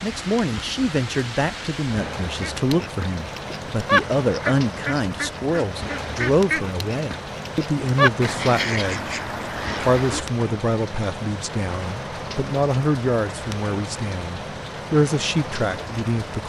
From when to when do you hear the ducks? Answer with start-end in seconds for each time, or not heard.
2.4-10.2.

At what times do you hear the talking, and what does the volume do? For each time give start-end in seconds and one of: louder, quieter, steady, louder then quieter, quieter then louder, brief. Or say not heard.
0.0-16.4 steady.